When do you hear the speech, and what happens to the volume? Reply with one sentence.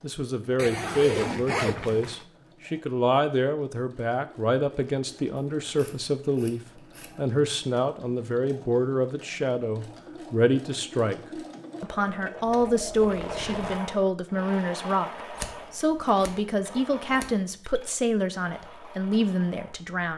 You can hear the speech from 0.0 to 20.1 s, at a steady volume.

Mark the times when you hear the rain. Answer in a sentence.
You can't hear the rain here.